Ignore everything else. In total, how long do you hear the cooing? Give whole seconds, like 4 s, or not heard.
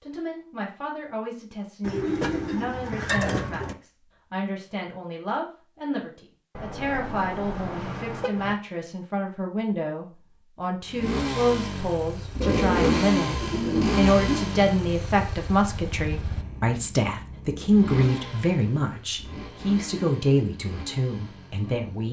4 s.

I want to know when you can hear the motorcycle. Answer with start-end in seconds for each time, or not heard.
10.8-22.0.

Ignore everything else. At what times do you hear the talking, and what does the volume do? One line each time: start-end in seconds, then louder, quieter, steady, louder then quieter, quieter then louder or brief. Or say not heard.
0.0-22.0 louder.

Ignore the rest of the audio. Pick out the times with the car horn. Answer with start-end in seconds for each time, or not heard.
6.5-8.6.